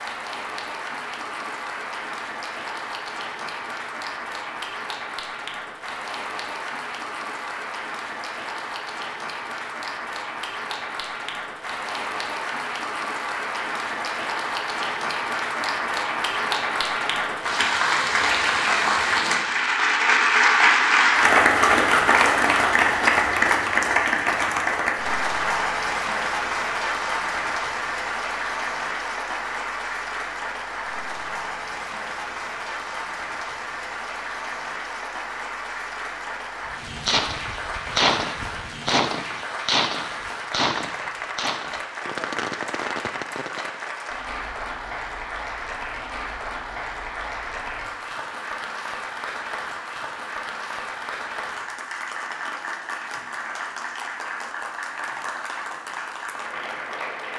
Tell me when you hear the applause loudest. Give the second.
21 s.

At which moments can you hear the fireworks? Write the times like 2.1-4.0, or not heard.
36.9-43.8.